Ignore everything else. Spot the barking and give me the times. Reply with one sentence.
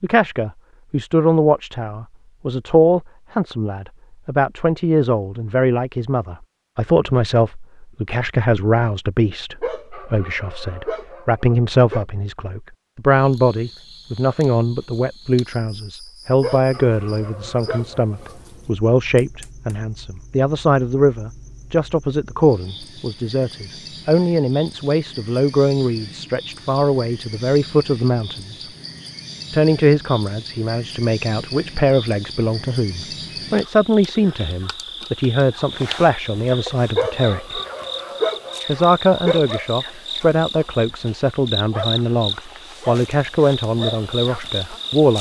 The barking can be heard from 9.6 to 12.1 s, from 16.4 to 18.4 s and from 37.0 to 39.5 s.